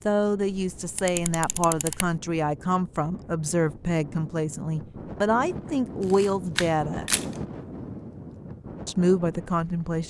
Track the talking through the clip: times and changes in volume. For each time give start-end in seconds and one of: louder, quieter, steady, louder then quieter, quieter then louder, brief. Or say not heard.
0.1-7.0 steady
8.8-10.0 brief.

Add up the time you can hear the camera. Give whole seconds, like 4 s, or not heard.
3 s.